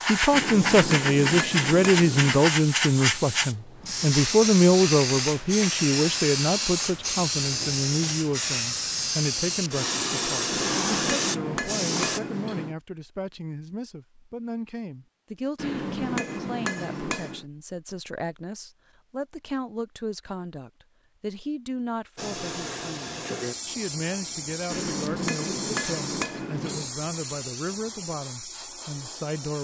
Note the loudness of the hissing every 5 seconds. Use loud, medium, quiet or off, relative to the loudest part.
loud, loud, loud, off, medium, medium.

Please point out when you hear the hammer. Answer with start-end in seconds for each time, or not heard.
0.3-2.5, 10.5-12.8, 15.6-17.4, 24.7-26.9.